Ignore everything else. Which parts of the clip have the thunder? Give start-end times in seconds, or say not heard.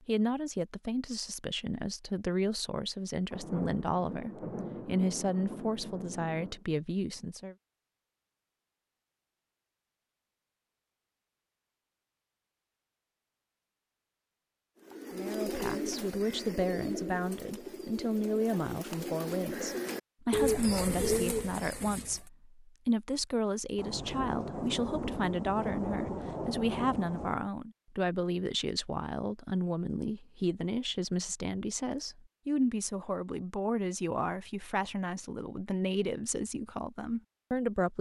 3.3-6.6, 23.8-27.5.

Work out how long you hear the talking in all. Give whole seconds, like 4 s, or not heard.
30 s.